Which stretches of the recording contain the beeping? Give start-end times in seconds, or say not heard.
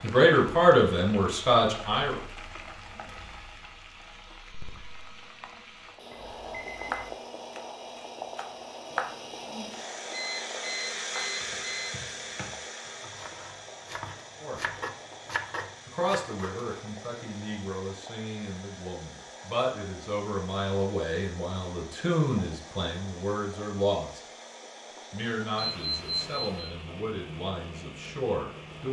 6.1-7.2, 10.1-11.9, 25.6-26.7.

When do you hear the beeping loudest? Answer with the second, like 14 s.
26 s.